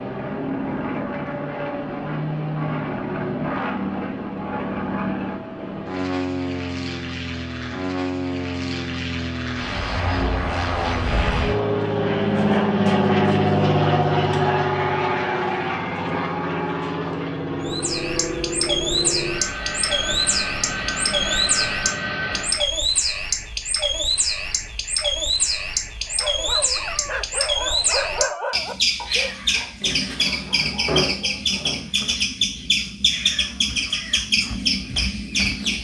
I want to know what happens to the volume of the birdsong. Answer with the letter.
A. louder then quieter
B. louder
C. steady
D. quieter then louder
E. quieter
C.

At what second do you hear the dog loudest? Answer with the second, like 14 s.
28 s.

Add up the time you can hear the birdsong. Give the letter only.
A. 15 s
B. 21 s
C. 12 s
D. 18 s
D.